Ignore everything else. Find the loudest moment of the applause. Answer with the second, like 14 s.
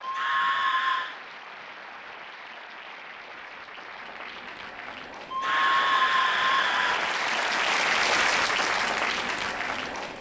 8 s.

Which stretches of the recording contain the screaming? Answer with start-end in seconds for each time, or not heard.
0.0-1.2, 5.3-7.1.